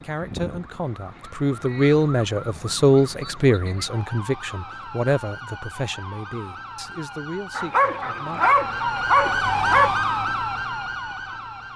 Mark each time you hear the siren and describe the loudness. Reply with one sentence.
You can hear the siren from 0.0 to 11.7 s, getting louder.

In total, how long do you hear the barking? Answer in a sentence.
You can hear the barking for 2 seconds altogether.